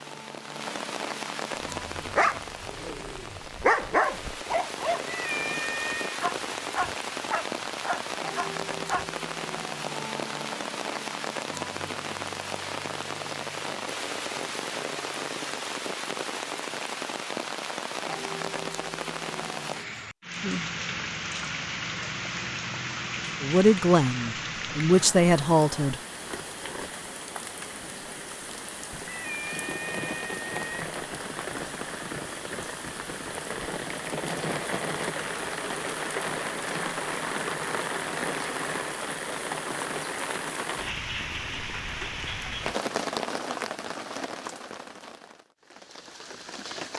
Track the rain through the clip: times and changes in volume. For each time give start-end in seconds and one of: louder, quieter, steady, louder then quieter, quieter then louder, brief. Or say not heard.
0.0-46.9 steady.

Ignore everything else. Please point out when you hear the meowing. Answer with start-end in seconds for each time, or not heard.
5.1-6.2, 29.1-30.9.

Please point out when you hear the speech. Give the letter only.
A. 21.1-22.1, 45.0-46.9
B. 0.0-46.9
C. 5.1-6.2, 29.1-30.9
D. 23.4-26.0
D.